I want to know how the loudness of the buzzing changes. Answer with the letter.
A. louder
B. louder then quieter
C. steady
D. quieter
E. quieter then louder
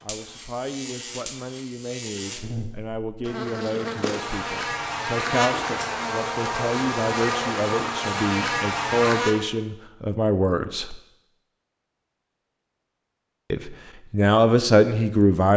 A.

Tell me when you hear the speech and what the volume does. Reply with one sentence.
The speech can be heard from 0.0 to 11.0 s, getting louder; and briefly from 13.5 to 15.5 s.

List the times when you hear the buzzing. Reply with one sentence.
You can hear the buzzing from 0.0 to 9.4 s.